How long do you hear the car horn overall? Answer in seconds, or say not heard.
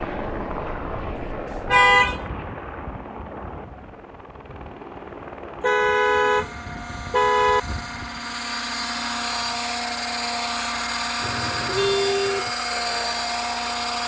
4 s.